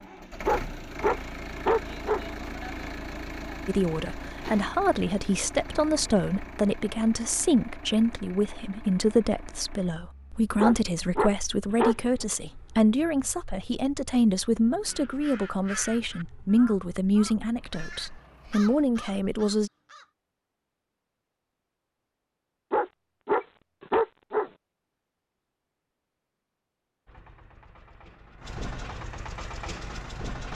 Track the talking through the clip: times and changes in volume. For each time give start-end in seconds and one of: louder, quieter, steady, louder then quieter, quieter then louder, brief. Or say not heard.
3.6-19.7 steady.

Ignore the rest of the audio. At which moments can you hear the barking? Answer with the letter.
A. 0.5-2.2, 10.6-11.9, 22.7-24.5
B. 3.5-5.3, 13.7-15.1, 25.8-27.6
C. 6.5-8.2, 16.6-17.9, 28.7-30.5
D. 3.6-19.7
A.